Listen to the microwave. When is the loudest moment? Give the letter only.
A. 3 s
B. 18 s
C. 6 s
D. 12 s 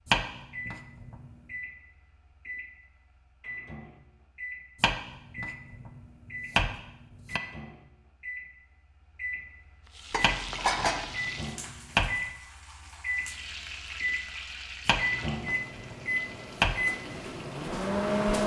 B.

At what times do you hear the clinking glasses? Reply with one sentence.
You can hear the clinking glasses from 10.1 to 11.1 s.